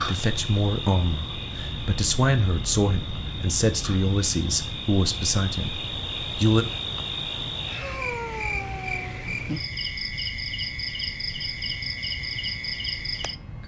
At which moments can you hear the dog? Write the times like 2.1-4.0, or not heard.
7.8-9.3.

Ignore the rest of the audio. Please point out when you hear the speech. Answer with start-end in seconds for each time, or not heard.
0.0-6.7.